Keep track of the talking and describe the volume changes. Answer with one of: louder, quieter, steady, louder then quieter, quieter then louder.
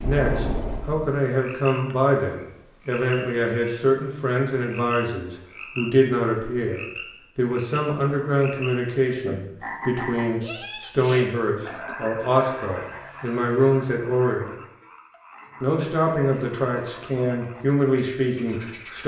steady.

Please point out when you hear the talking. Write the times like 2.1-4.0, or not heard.
0.0-14.5, 15.6-19.0.